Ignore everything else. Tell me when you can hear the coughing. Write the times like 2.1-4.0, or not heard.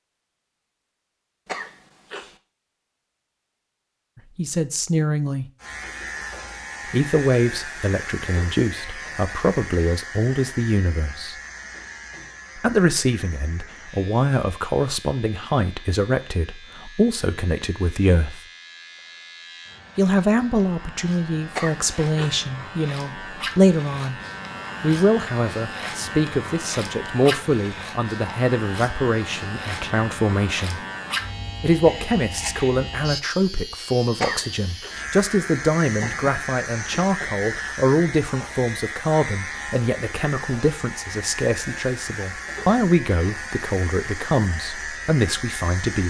1.4-2.4, 21.6-22.4, 34.2-34.9.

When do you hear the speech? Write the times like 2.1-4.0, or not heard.
4.3-5.5, 6.9-11.3, 12.6-18.4, 19.9-24.2, 24.8-30.9, 31.6-46.0.